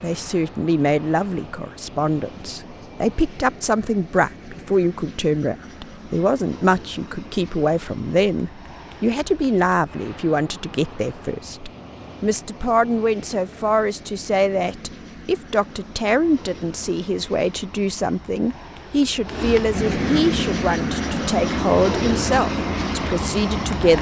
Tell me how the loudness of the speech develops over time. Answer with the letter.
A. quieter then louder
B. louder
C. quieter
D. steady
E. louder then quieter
D.